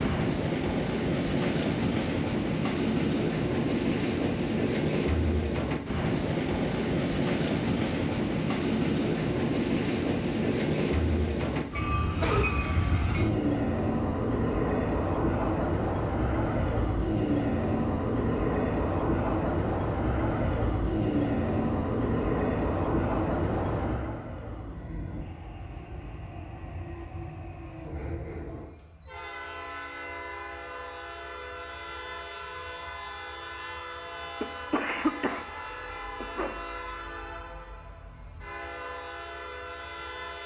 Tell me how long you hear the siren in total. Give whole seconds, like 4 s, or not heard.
not heard.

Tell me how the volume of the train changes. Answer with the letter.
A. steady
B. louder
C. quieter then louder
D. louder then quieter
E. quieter
E.